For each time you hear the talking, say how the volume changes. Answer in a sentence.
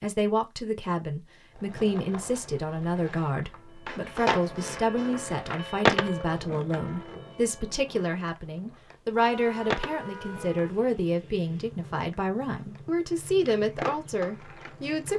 The talking can be heard from 0.0 to 15.1 s, at a steady volume.